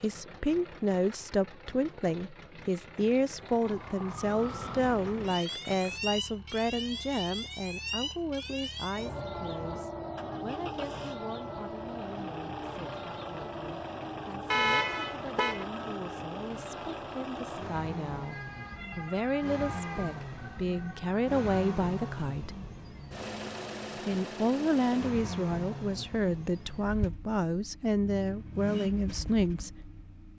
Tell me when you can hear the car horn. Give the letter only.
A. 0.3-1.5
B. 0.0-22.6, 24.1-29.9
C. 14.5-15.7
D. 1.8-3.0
C.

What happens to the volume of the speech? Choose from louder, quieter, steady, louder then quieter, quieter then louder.
quieter then louder.